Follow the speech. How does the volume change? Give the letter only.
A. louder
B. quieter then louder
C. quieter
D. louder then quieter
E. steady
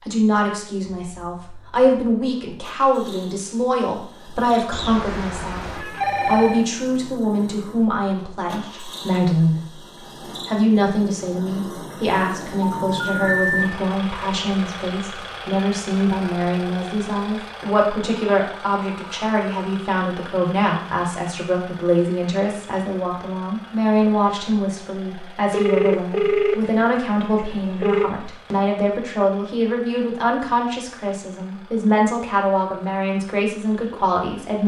E.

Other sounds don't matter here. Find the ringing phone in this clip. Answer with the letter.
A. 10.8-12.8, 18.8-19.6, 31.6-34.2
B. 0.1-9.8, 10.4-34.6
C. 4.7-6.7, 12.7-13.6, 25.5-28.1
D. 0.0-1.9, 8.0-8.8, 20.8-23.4
C.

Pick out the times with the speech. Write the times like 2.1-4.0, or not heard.
0.1-9.8, 10.4-34.6.